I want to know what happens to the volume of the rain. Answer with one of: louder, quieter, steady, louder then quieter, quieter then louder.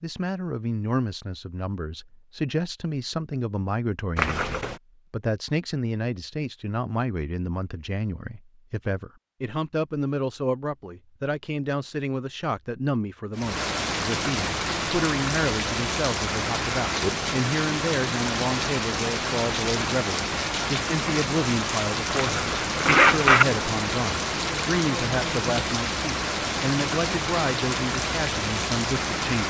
steady.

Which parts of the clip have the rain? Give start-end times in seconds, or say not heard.
13.3-29.4.